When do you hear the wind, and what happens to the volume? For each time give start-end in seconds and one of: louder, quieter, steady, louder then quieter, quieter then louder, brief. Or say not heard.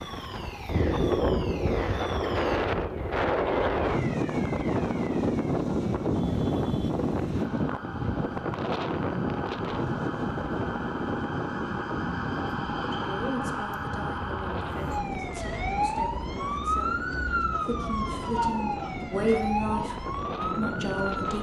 0.0-21.3 quieter.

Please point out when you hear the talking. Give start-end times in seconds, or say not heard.
12.9-21.3.